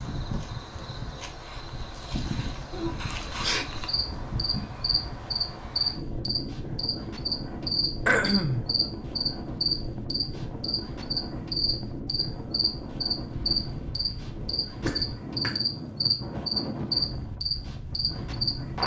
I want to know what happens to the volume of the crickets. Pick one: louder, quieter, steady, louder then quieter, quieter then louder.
louder.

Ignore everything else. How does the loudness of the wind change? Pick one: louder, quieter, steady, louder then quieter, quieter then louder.
steady.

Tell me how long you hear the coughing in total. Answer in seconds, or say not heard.
2 s.